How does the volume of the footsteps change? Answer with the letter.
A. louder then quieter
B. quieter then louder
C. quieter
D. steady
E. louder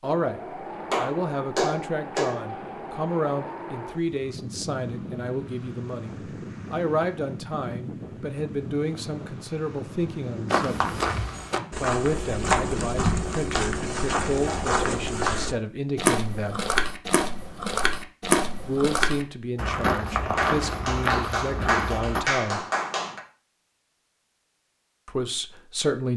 D.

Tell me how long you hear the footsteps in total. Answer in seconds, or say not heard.
12 s.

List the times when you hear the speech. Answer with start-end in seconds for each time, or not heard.
0.0-10.9, 11.8-16.6, 18.6-22.6, 25.1-26.1.